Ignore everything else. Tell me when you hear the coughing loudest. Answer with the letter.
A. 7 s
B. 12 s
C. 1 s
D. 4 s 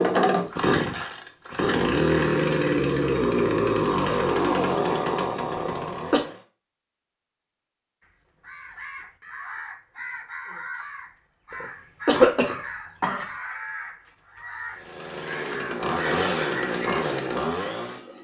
B.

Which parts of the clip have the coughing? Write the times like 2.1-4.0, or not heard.
5.5-6.2, 11.6-13.3.